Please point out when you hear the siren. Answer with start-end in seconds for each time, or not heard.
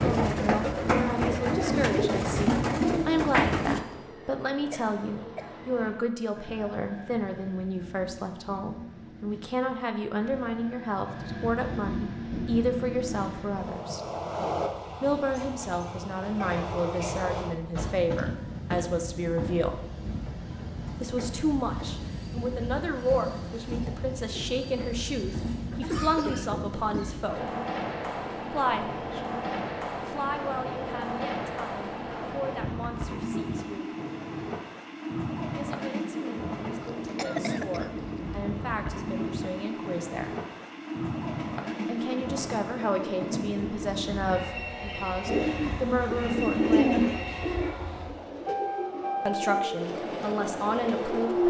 not heard.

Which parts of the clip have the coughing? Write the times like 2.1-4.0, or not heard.
4.7-5.7, 25.8-27.2, 36.9-37.9.